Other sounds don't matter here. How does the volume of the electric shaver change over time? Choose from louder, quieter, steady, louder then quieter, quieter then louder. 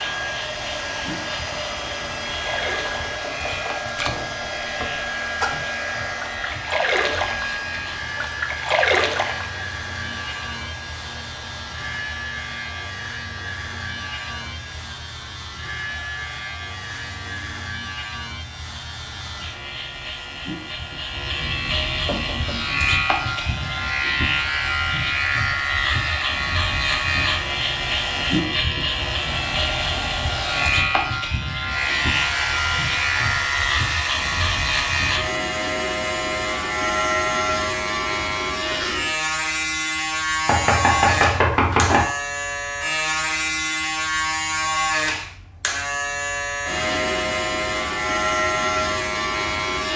louder.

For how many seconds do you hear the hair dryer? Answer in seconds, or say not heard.
35 s.